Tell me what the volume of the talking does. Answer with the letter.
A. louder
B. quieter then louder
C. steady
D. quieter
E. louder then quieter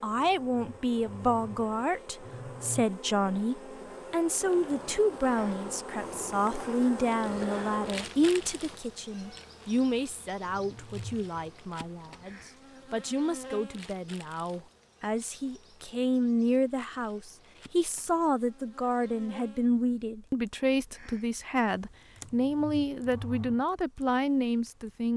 B.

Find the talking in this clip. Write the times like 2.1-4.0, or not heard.
0.0-25.1.